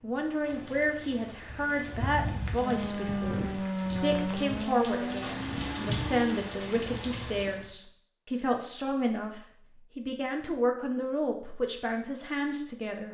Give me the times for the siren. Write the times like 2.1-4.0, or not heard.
2.6-6.5.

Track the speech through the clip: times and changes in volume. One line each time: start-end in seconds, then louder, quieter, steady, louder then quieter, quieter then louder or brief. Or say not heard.
0.0-13.0 steady.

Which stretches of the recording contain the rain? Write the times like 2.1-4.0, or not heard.
0.0-7.6.